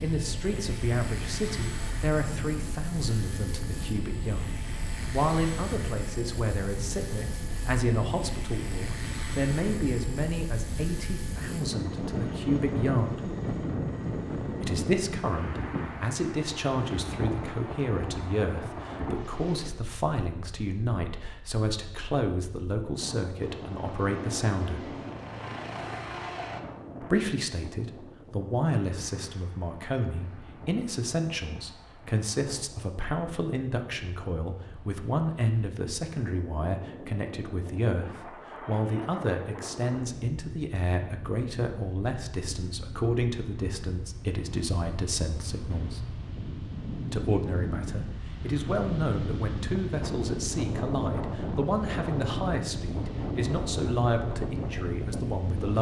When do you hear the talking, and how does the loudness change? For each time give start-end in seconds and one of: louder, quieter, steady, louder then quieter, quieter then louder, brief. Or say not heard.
0.0-13.3 steady
14.6-24.9 steady
27.0-46.0 steady
47.1-55.7 steady.